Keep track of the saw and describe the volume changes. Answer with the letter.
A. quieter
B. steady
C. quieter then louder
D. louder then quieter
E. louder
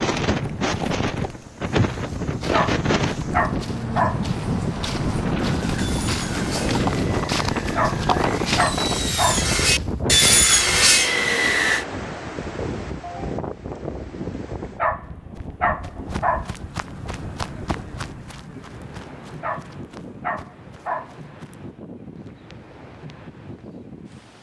E.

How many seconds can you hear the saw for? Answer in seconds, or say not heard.
6 s.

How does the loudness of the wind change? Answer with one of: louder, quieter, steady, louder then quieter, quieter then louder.
quieter.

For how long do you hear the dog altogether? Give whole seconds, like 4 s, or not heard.
7 s.